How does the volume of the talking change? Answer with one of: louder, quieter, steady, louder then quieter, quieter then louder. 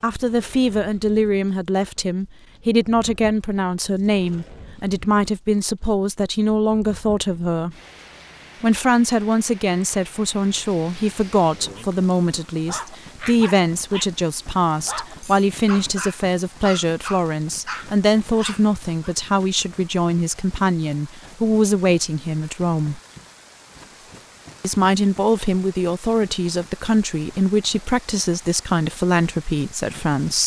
steady.